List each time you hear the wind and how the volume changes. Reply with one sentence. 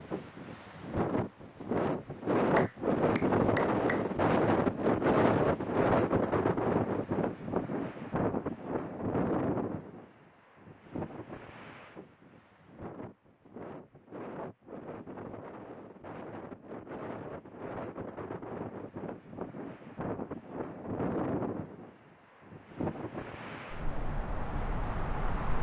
You can hear the wind from 0.0 to 25.5 s, getting quieter then louder.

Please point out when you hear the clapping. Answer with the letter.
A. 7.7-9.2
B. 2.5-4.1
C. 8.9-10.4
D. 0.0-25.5
B.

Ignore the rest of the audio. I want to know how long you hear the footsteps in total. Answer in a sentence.
You can't hear the footsteps here.